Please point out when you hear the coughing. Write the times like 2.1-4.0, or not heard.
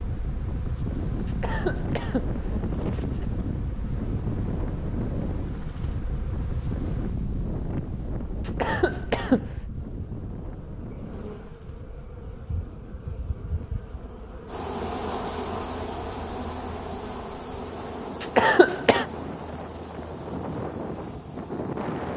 1.2-3.2, 8.4-9.6, 18.2-19.1.